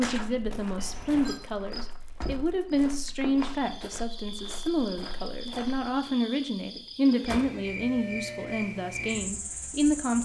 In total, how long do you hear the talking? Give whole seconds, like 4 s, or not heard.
10 s.